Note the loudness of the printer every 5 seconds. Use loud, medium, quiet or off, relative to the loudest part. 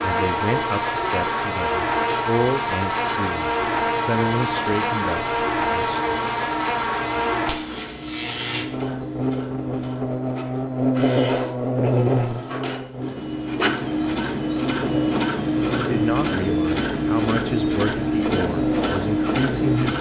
quiet, quiet, medium, loud.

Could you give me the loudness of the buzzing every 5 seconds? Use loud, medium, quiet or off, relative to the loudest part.
loud, loud, loud, medium.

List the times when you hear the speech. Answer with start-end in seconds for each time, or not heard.
0.0-6.2, 15.8-19.9.